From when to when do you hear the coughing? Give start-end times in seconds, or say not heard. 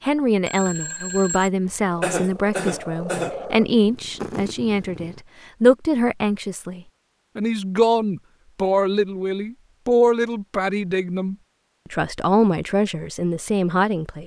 2.0-3.4.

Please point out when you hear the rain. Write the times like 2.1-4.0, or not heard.
not heard.